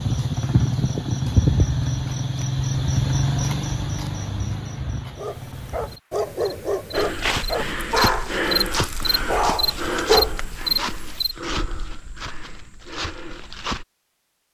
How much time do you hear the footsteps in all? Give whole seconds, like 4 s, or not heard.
7 s.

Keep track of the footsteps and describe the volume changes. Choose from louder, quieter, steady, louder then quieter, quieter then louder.
quieter.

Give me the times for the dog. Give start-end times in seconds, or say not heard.
5.2-10.9.